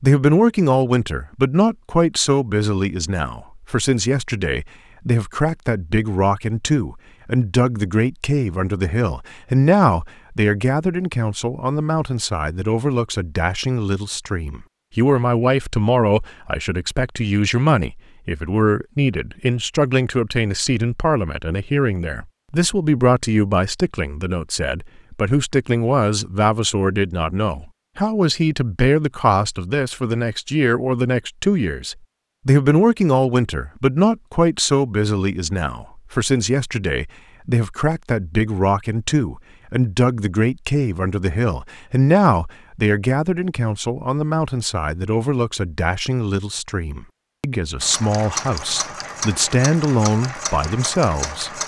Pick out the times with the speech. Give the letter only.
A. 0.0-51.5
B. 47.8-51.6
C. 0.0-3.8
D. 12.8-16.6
A.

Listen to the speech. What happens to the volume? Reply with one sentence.
The volume of the speech stays about the same.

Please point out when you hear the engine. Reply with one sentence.
The engine can be heard from 47.8 to 51.6 s.